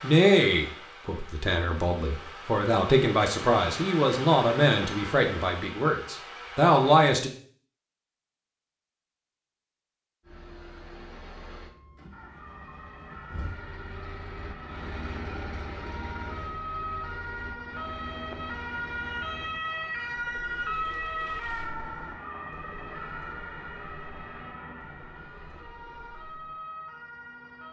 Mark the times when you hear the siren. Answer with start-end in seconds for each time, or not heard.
12.1-27.6.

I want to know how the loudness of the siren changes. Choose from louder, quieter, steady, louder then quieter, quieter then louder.
louder then quieter.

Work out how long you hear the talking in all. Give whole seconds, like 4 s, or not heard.
7 s.